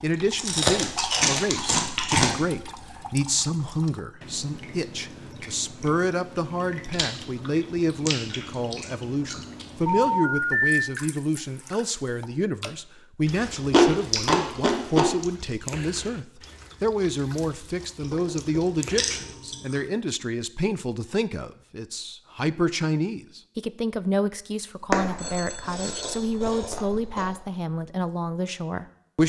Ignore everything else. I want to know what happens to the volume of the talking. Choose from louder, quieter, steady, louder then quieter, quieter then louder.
steady.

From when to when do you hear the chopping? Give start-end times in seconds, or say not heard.
not heard.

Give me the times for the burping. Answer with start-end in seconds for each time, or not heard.
not heard.